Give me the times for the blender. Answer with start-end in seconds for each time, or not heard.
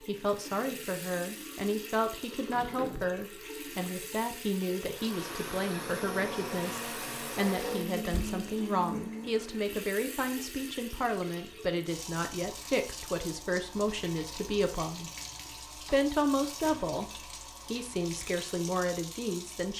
4.8-9.7.